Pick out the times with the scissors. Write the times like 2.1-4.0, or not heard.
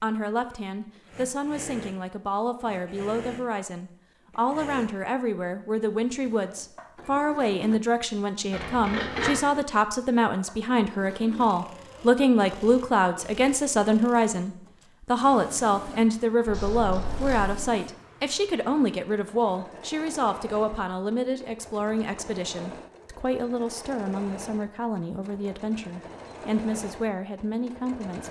8.5-9.3, 16.4-17.6.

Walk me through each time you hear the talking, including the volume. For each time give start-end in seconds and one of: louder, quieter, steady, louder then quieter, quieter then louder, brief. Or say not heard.
0.0-28.2 louder then quieter.